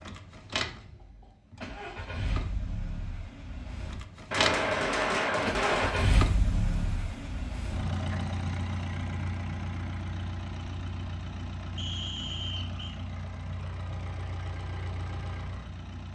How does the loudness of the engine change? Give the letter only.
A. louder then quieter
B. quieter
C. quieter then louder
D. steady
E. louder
A.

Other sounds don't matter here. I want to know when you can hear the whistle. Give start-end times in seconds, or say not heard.
11.8-13.0.